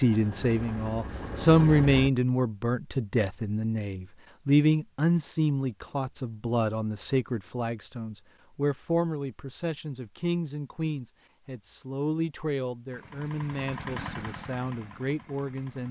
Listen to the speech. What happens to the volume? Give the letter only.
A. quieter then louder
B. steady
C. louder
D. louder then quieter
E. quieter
E.